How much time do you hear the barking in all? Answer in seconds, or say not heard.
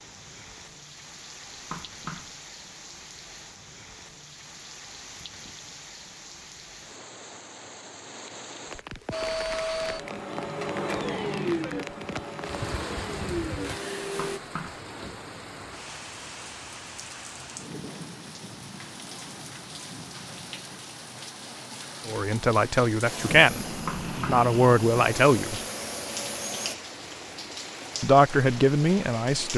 not heard.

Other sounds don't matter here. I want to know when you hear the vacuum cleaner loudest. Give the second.
11 s.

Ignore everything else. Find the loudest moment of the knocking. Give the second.
24 s.